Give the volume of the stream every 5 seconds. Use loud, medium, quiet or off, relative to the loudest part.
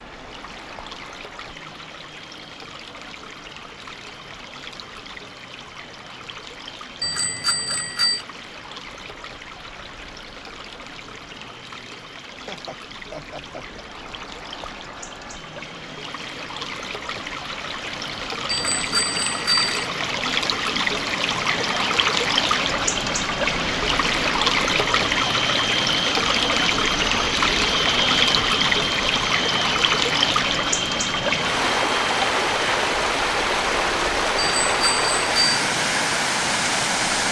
quiet, quiet, quiet, medium, loud, loud, loud, loud.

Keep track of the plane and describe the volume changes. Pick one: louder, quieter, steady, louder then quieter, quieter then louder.
louder.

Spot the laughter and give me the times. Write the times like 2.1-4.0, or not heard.
12.3-13.8.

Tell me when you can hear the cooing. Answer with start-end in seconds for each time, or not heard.
not heard.